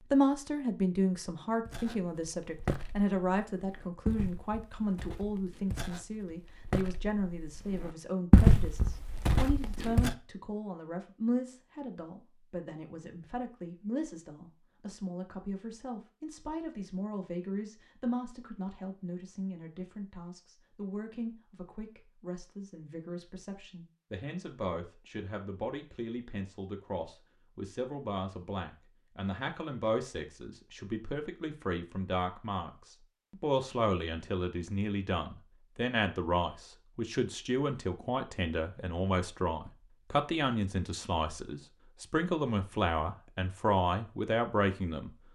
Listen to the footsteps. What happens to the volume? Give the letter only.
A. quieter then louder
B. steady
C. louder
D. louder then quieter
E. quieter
A.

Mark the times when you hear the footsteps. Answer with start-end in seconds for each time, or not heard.
1.6-10.2.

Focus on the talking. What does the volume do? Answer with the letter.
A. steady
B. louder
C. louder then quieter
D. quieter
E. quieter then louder
E.